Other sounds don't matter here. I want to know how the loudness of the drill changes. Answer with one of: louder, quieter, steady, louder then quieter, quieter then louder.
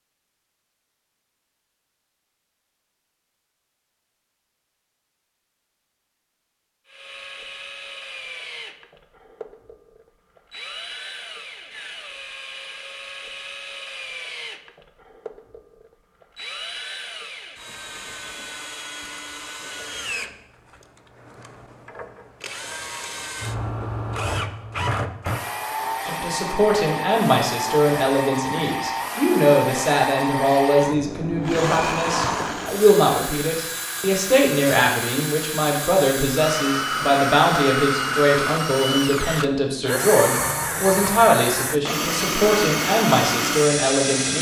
louder.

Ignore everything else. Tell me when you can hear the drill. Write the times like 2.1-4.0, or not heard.
6.8-44.3.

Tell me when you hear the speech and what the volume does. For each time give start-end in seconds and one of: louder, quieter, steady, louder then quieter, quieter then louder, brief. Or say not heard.
26.1-44.3 steady.